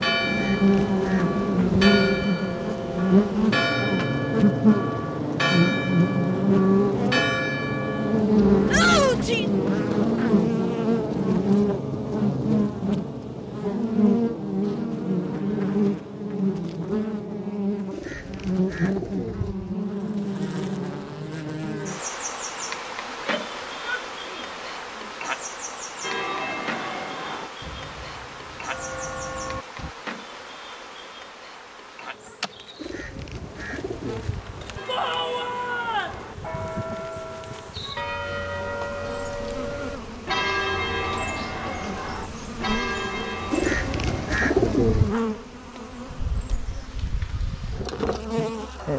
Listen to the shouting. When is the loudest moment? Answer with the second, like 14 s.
9 s.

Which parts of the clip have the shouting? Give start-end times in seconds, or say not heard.
8.7-9.4, 23.1-24.4, 34.9-36.2.